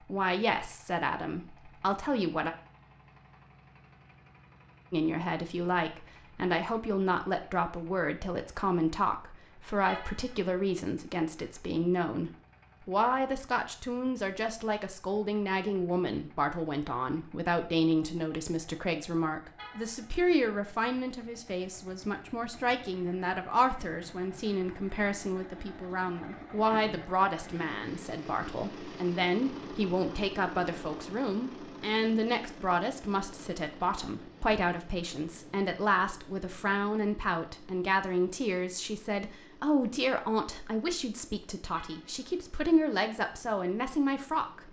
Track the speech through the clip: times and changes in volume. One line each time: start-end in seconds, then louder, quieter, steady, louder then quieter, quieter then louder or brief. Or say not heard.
0.1-2.5 brief
4.9-44.6 steady.